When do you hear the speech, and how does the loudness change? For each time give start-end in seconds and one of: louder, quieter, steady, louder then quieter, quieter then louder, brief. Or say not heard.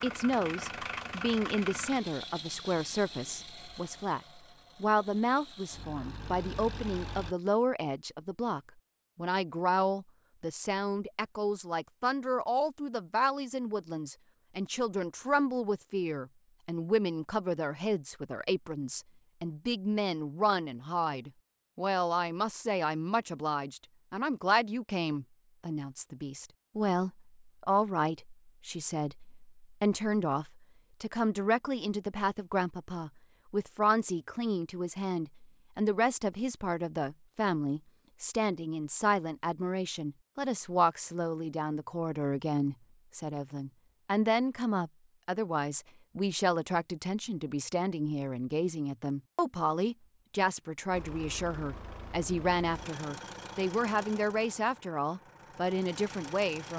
0.0-56.7 steady.